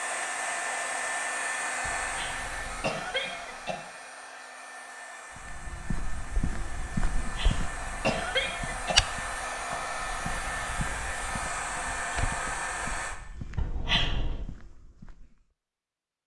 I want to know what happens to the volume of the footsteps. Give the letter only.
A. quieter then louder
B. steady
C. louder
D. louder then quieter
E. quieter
D.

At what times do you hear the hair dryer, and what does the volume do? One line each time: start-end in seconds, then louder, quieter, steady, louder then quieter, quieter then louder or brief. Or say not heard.
0.0-13.2 quieter then louder.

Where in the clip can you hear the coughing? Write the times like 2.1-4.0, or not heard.
1.8-3.8, 7.2-9.0, 13.6-14.4.